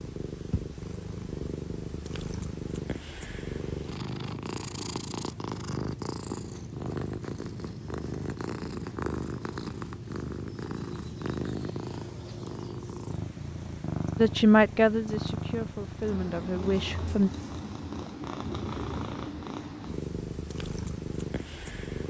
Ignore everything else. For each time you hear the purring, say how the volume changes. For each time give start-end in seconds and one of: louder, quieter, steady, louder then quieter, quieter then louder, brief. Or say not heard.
0.0-22.0 steady.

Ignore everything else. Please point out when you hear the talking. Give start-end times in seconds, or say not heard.
14.2-17.3.